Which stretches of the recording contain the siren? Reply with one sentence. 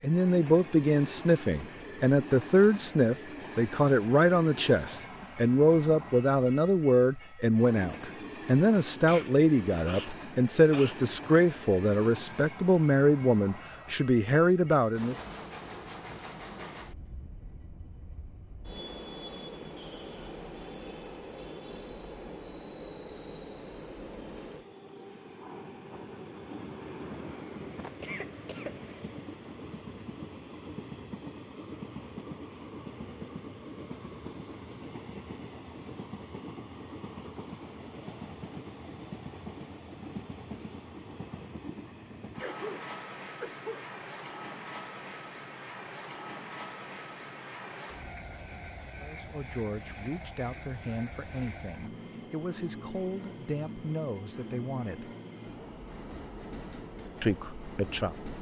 The siren can't be heard in this clip.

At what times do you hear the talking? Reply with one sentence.
You can hear the talking from 0.0 to 15.2 s, from 49.0 to 55.1 s and from 57.2 to 58.3 s.